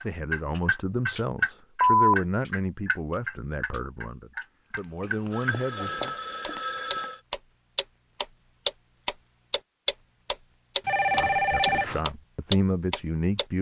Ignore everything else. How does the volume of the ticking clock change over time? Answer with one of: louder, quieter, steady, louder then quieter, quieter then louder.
quieter then louder.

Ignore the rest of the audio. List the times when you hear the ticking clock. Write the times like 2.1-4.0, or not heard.
0.0-13.4.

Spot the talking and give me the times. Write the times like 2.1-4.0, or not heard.
0.0-6.1, 11.2-13.5.